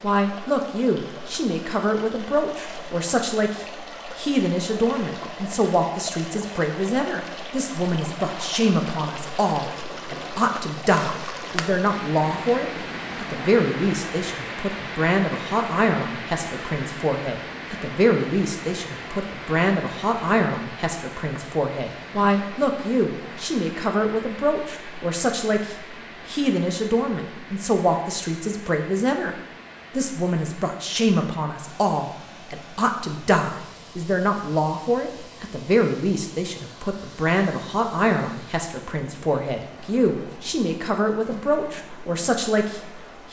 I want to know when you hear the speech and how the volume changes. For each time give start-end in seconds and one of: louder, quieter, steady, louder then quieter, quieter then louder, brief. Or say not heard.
0.0-43.2 steady.